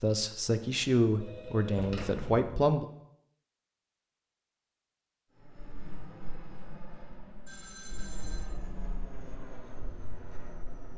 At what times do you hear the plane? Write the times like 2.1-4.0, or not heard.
5.4-10.9.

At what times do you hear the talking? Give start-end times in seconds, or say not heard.
0.0-2.9.